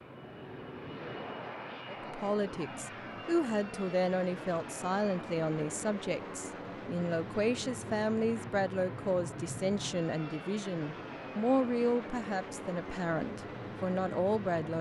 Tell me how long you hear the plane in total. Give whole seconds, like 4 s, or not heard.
15 s.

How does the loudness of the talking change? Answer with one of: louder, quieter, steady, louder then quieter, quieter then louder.
steady.